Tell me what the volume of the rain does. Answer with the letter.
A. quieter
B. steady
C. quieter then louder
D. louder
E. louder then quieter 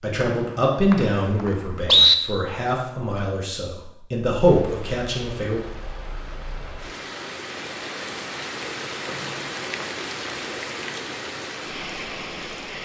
D.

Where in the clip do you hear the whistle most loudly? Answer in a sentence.
The volume of the whistle peaks at 2 seconds.